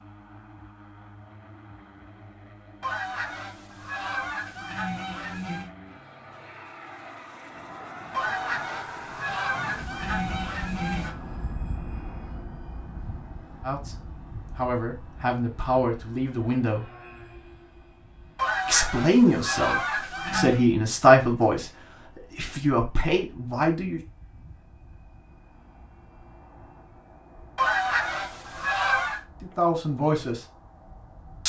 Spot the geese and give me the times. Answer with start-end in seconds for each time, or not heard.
2.8-5.7, 8.1-11.2, 18.4-20.6, 27.6-29.2.